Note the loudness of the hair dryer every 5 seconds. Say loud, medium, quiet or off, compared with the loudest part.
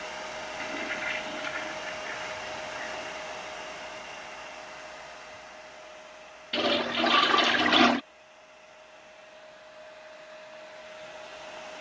loud, medium, medium.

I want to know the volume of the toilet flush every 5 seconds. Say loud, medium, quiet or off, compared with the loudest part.
quiet, loud, off.